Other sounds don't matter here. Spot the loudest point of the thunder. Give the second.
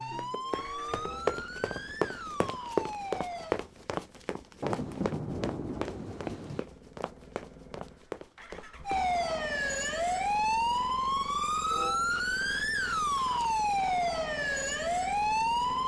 5 s.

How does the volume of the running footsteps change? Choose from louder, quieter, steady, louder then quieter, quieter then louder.
quieter.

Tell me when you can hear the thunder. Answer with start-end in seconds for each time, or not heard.
4.6-6.7.